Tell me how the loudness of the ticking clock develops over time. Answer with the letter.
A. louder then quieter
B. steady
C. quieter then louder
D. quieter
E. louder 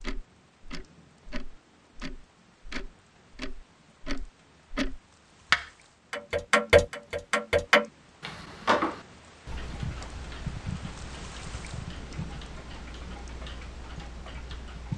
A.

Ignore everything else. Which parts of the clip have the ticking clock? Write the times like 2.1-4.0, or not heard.
0.0-14.9.